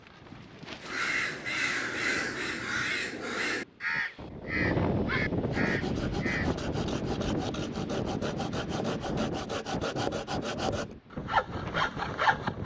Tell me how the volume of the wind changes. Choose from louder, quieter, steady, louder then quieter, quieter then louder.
louder then quieter.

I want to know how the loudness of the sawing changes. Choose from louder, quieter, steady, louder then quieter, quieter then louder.
louder.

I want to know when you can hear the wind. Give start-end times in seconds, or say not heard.
0.0-12.6.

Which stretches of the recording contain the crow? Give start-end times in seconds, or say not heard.
0.8-6.5.